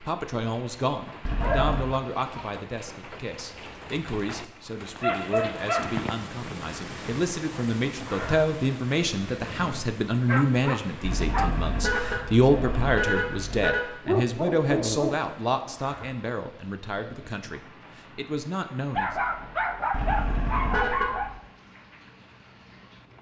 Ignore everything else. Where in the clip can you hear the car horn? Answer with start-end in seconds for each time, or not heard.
1.2-1.9, 11.1-13.8, 19.9-21.4.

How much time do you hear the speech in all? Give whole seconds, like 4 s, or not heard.
19 s.